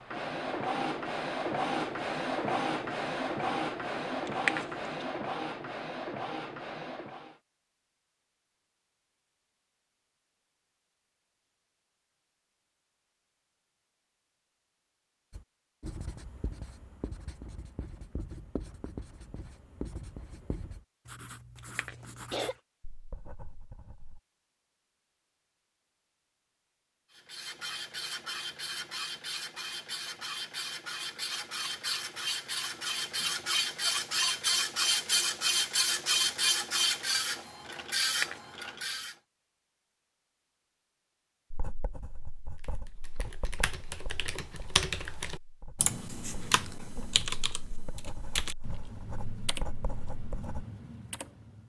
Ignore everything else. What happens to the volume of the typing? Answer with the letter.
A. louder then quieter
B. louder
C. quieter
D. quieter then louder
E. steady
A.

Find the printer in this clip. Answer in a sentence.
The printer can be heard from 0.0 to 7.4 s and from 27.1 to 39.1 s.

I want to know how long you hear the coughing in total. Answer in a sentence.
You can hear the coughing for 2 seconds altogether.